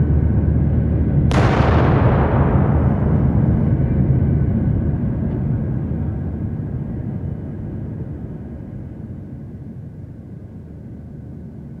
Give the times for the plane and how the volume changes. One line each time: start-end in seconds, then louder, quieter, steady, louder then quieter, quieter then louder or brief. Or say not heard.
0.0-11.7 quieter.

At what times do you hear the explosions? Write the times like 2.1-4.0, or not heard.
1.3-3.7.